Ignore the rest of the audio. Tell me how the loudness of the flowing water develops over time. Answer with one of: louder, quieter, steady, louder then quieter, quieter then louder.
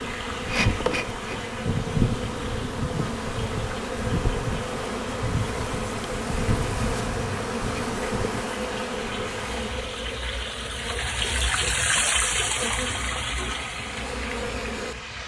louder.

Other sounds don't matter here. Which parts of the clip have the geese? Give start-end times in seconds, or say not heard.
not heard.